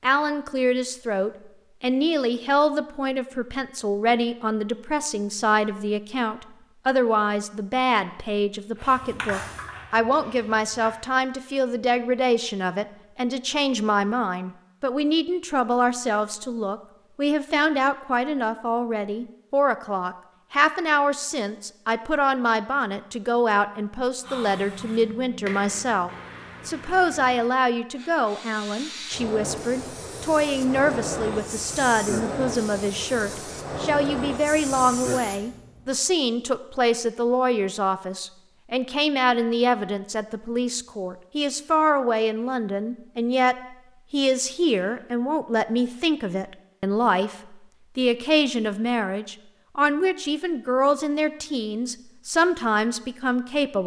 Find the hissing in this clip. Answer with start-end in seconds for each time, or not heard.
8.8-10.9, 24.2-35.7.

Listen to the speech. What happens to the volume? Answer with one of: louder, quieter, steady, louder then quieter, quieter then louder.
steady.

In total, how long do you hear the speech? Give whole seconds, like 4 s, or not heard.
54 s.